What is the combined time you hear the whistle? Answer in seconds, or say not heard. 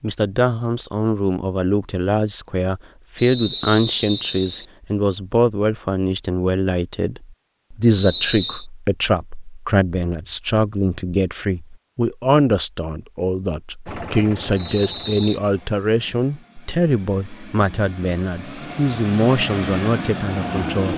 3 s.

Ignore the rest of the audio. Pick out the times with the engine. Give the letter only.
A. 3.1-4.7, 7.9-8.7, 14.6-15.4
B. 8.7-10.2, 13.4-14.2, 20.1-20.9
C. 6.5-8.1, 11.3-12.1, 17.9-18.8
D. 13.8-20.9
D.